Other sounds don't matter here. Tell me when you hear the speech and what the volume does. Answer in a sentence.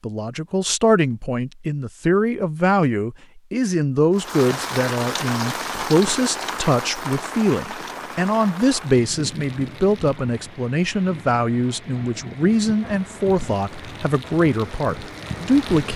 The speech can be heard from 0.0 to 15.9 s, at a steady volume.